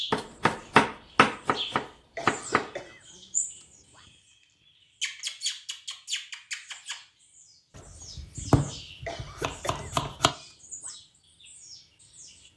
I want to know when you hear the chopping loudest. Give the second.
1 s.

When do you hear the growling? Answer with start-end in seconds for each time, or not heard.
not heard.